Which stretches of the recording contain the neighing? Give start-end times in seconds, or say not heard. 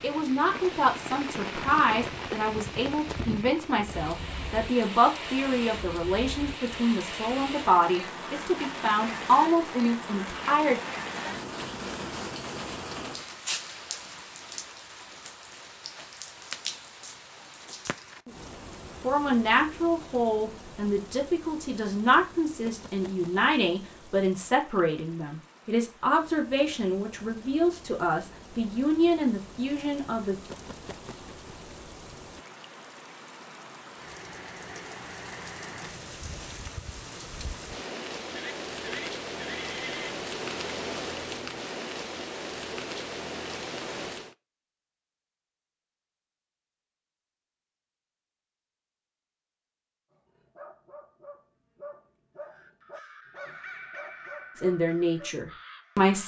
38.4-40.1.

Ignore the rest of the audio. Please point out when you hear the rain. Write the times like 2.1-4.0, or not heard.
0.0-44.4.